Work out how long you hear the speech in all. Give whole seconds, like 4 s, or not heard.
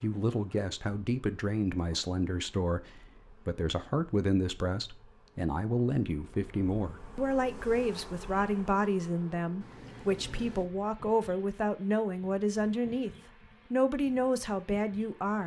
15 s.